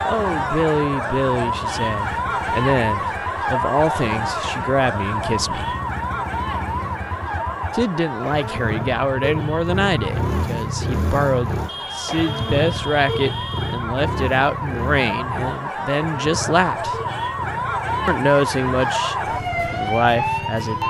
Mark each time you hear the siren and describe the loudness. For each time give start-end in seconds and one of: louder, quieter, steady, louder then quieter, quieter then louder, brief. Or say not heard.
0.0-20.8 quieter then louder.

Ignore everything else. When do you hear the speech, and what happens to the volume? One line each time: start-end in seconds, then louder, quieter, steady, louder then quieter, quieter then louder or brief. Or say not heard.
0.1-5.8 quieter then louder
7.7-17.0 steady
18.1-20.8 brief.